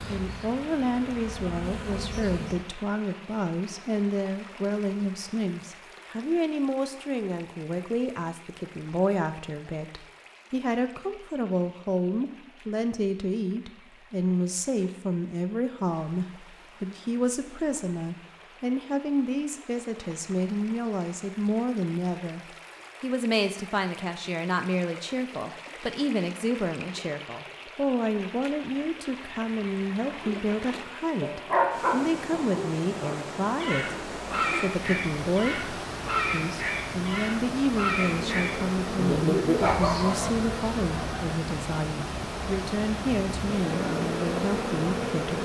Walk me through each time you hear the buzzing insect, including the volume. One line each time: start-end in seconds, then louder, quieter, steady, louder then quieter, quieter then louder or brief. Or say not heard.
0.0-2.6 brief
38.0-45.4 quieter then louder.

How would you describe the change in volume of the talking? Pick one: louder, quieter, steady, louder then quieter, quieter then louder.
steady.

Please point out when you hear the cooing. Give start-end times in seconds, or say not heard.
not heard.